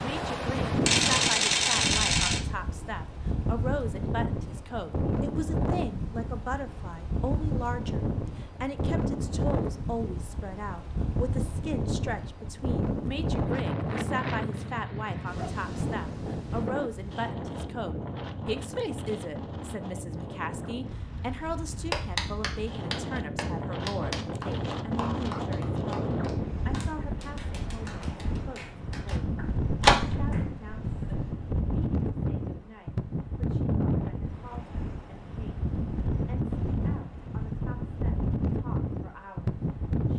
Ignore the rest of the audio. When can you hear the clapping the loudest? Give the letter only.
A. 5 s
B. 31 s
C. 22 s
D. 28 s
C.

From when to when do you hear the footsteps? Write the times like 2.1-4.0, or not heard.
not heard.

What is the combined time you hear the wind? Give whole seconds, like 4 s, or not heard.
40 s.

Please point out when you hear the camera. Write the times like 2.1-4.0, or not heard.
0.8-2.4, 29.6-31.3.